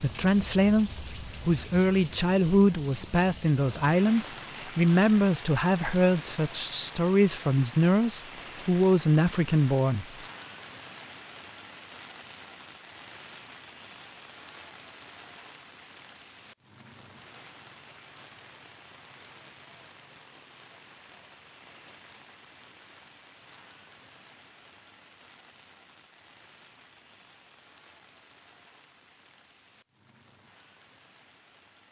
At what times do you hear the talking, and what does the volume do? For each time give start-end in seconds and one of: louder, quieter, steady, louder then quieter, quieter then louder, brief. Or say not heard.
0.0-10.1 steady.